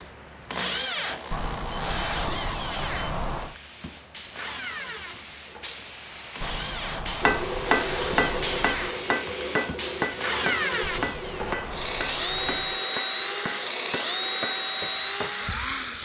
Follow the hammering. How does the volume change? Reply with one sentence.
The volume of the hammering goes down.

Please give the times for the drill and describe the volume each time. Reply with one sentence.
The drill can be heard from 0.0 to 16.0 s, getting quieter then louder.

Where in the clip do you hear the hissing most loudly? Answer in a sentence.
The loudest moment of the hissing is at 9 seconds.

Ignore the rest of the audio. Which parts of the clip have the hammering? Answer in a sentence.
You can hear the hammering from 7.2 to 15.3 s.